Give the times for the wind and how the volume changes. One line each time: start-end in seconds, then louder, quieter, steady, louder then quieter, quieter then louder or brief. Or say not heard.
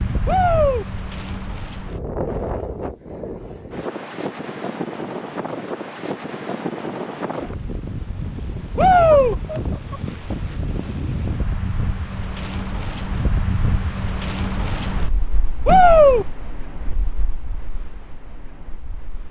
0.0-19.2 quieter.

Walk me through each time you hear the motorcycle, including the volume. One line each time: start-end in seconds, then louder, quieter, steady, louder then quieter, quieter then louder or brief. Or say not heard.
not heard.